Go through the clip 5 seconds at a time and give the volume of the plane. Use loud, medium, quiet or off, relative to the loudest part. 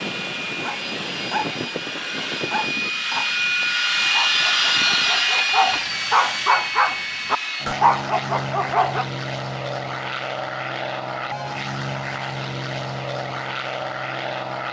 loud, loud, medium.